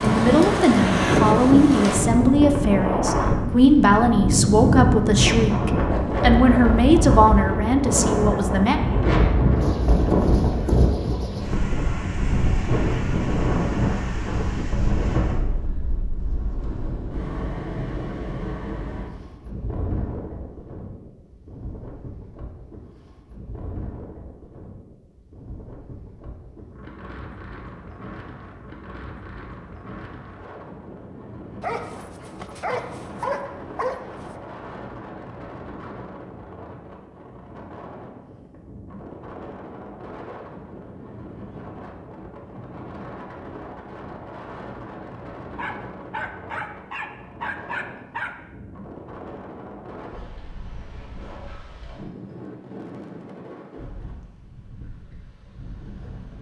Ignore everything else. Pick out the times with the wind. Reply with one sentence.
You can hear the wind from 0.0 to 56.3 s.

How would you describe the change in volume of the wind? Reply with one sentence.
The volume of the wind goes down.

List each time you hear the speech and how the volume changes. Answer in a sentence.
The speech can be heard from 0.0 to 8.8 s, at a steady volume.